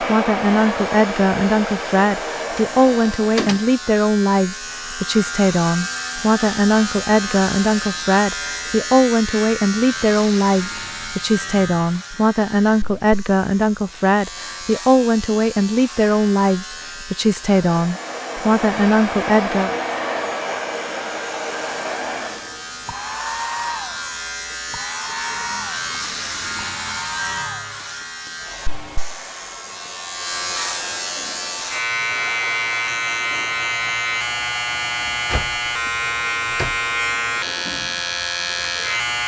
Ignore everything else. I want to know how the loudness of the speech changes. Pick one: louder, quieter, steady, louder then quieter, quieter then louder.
steady.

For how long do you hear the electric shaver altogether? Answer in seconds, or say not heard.
39 s.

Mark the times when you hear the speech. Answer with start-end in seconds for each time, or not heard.
0.0-19.8.